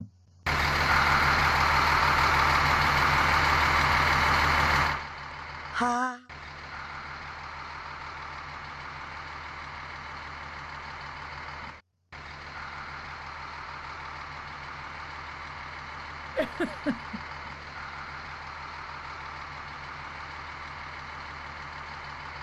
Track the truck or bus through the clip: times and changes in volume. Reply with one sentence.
You can hear the truck or bus from 0.0 to 22.3 s, getting quieter.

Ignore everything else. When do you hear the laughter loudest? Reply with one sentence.
The loudest moment of the laughter is at 6 seconds.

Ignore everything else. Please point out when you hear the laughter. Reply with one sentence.
You can hear the laughter from 5.7 to 6.2 s and from 16.4 to 17.2 s.